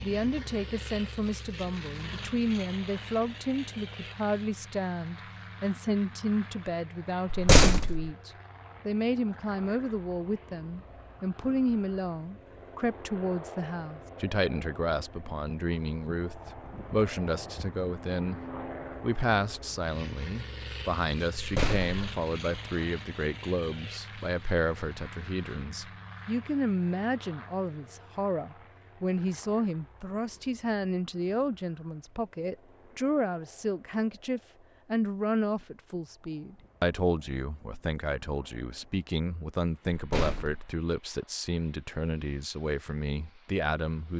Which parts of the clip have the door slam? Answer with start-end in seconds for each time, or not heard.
7.3-8.1, 21.4-21.9, 39.9-40.6.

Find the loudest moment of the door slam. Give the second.
8 s.